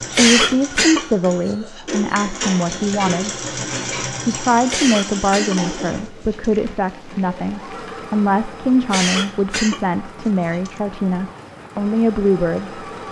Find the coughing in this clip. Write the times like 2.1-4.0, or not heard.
0.1-1.9, 4.7-6.5, 8.9-10.7.